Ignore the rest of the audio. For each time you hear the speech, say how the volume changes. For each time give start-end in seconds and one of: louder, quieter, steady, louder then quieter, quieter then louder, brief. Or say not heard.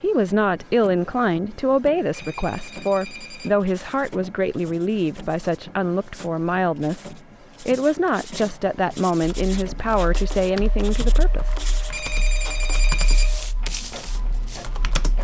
0.0-11.6 steady.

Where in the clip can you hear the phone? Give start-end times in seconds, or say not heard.
2.1-3.6, 11.9-13.4.